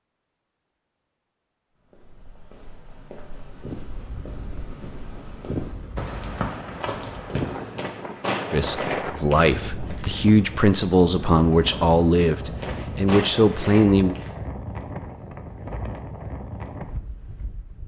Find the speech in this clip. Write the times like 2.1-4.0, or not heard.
8.5-14.2.